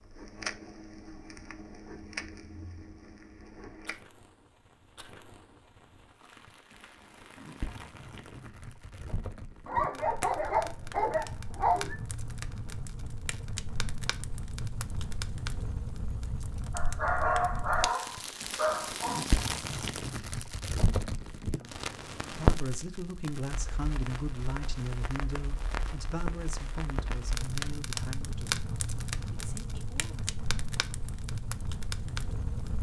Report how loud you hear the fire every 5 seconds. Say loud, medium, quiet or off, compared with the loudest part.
medium, quiet, medium, loud, loud, loud, loud.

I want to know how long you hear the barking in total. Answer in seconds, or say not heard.
5 s.